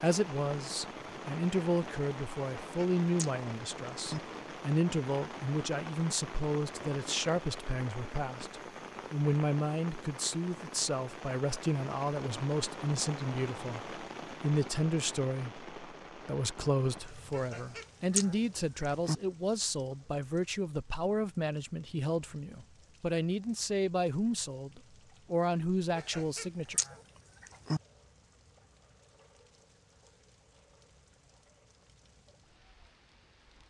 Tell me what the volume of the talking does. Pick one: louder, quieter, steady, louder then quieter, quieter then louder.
steady.